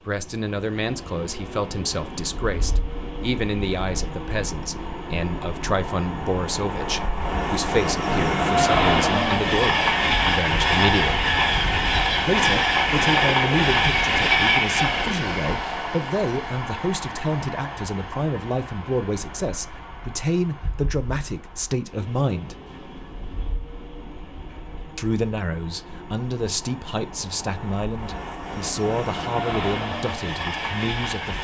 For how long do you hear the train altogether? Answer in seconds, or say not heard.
31 s.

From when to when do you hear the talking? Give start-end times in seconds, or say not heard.
0.1-11.3, 12.2-22.6, 24.9-31.3.